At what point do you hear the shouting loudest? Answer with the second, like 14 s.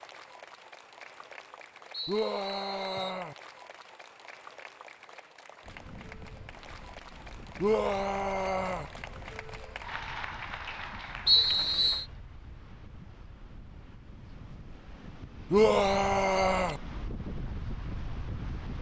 16 s.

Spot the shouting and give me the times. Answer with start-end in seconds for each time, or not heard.
2.0-3.4, 7.6-8.8, 15.5-16.8.